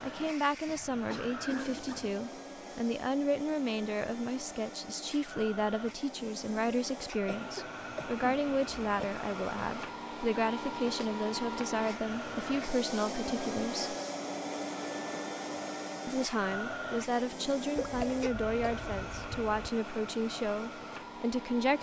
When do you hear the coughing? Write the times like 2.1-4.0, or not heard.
0.7-2.1, 7.2-9.2, 17.8-19.7.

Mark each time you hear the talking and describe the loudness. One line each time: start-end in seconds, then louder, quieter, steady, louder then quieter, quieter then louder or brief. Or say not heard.
0.0-13.9 steady
16.1-21.7 steady.